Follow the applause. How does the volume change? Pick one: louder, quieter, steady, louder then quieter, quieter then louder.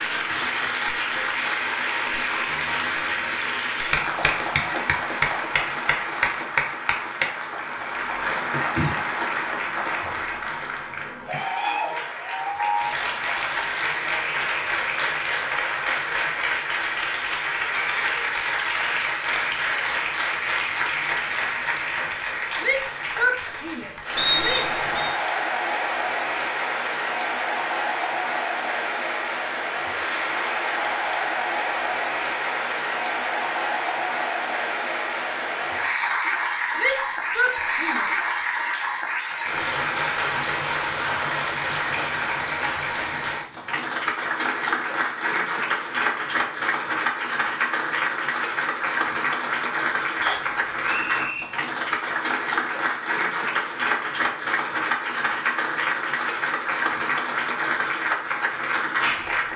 steady.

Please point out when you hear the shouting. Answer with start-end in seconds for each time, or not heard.
22.6-24.7, 36.8-38.2.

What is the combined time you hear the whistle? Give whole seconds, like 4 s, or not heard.
2 s.